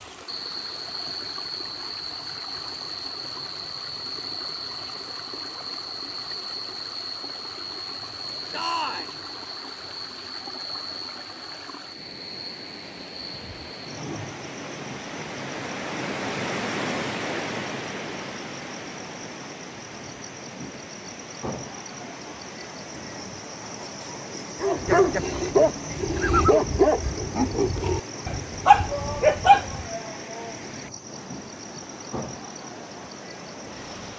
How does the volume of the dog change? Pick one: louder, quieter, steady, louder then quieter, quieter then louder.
quieter then louder.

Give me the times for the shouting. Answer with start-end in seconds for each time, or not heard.
8.5-9.2, 28.9-30.7.